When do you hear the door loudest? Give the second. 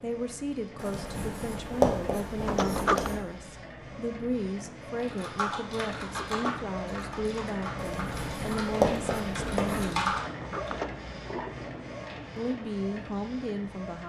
3 s.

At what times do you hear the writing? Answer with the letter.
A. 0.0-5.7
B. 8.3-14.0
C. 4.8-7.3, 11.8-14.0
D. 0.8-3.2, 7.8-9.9
D.